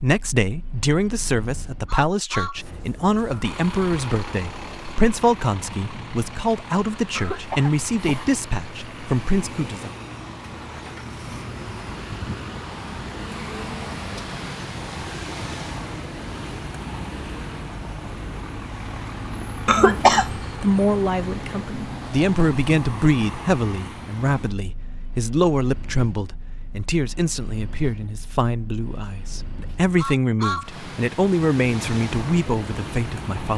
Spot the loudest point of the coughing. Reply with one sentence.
The volume of the coughing peaks at 20 seconds.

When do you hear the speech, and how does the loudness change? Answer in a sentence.
The speech can be heard from 0.0 to 9.9 s, at a steady volume; and from 19.9 to 33.5 s, at a steady volume.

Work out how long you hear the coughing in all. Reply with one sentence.
The coughing can be heard for 2 seconds in total.